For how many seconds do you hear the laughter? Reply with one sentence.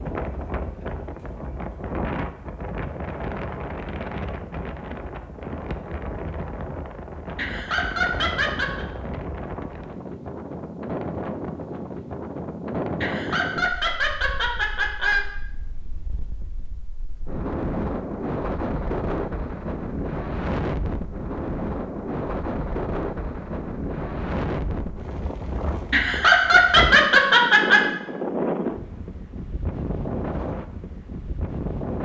The laughter can be heard for 6 seconds in total.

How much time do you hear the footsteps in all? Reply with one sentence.
You can't hear the footsteps here.